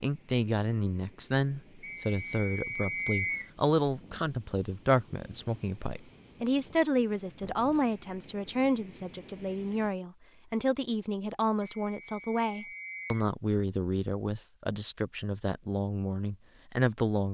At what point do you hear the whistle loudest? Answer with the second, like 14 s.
3 s.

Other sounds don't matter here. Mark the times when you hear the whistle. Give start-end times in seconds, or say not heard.
1.8-3.5, 11.6-13.3.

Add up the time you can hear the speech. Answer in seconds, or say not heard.
17 s.